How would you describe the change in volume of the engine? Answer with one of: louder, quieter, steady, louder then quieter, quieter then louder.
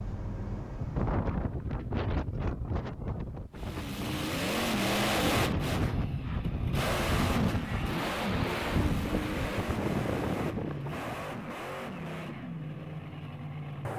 quieter.